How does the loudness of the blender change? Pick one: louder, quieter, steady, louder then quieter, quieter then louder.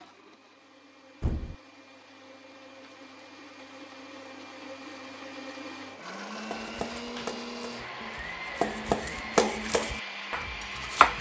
louder.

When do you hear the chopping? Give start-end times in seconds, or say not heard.
6.5-11.1.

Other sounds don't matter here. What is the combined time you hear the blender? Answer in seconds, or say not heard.
11 s.